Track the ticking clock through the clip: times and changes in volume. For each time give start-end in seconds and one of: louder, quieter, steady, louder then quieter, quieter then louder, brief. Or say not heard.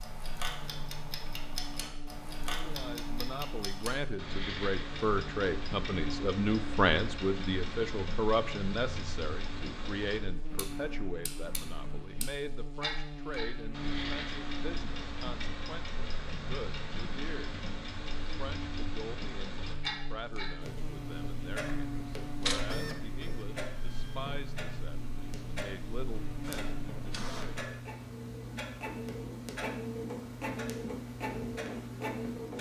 0.0-32.5 steady.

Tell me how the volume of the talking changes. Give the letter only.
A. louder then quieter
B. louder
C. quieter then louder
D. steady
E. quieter
E.